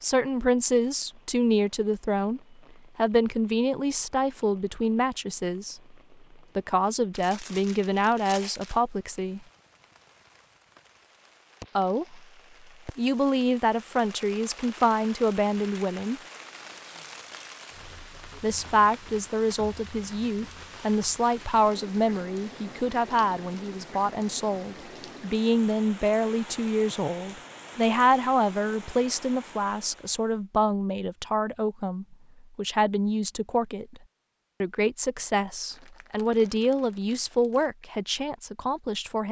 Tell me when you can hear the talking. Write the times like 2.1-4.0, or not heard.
0.0-5.8, 6.5-9.4, 11.8-12.2, 12.9-16.2, 18.4-34.0, 34.6-39.2.